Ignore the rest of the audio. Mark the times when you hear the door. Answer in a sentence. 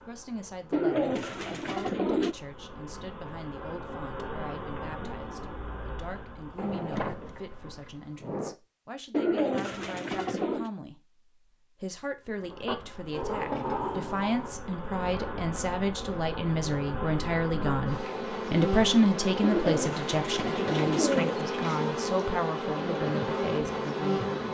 The door can be heard from 6.5 to 8.6 s and from 13.1 to 14.6 s.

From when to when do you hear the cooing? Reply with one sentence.
You can hear the cooing from 0.7 to 2.4 s, from 9.1 to 10.7 s and from 19.4 to 21.4 s.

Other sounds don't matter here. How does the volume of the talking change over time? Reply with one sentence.
The loudness of the talking goes up, then down.